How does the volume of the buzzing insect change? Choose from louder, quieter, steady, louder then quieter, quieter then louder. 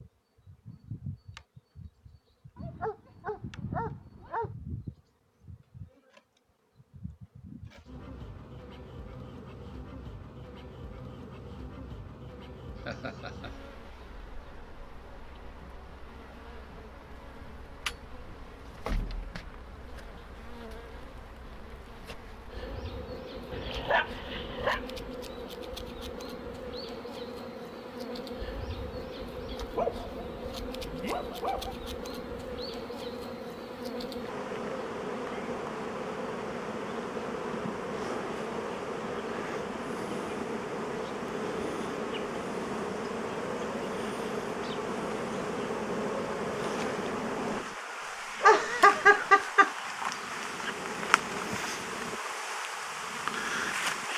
louder.